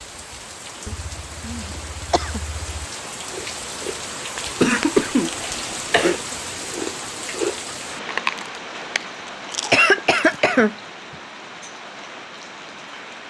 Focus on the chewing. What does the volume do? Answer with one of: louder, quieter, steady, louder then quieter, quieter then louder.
louder then quieter.